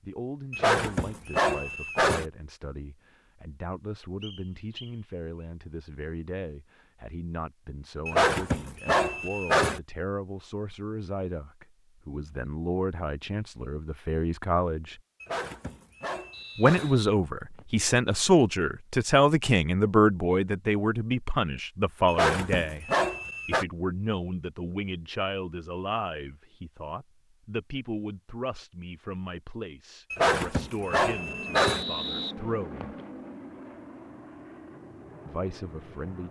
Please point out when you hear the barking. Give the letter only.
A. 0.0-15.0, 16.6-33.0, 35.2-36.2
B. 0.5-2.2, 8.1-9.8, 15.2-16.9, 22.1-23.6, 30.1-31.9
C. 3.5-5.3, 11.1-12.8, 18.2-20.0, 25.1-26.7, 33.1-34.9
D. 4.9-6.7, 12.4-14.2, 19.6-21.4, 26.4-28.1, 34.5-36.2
B.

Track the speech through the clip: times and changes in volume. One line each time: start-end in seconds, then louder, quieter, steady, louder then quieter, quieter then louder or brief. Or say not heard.
0.0-15.0 louder
16.6-33.0 quieter
35.2-36.2 brief.